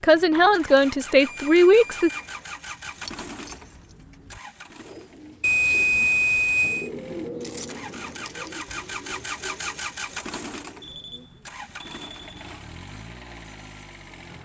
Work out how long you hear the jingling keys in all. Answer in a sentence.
The jingling keys can be heard for 3 seconds in total.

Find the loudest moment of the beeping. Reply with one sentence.
The loudest moment of the beeping is at 6 seconds.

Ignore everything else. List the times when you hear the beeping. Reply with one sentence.
The beeping can be heard from 0.3 to 2.4 s, from 5.4 to 6.9 s and from 10.8 to 12.4 s.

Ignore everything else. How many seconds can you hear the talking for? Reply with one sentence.
The talking can be heard for 2 seconds in total.